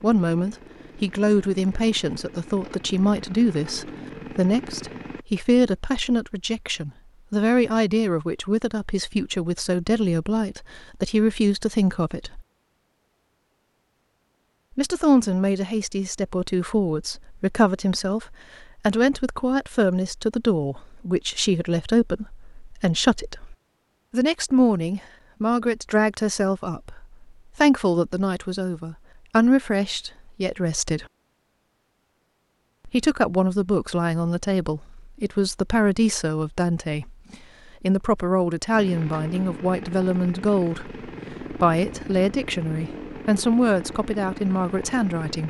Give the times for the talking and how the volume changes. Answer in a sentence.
The talking can be heard from 0.0 to 12.4 s, at a steady volume; from 14.8 to 31.1 s, at a steady volume; and from 32.9 to 45.4 s, at a steady volume.